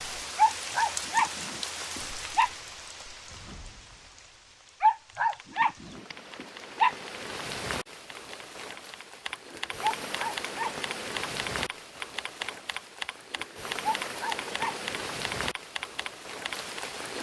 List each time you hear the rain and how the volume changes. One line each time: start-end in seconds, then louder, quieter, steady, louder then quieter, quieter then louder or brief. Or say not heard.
0.0-17.1 quieter then louder.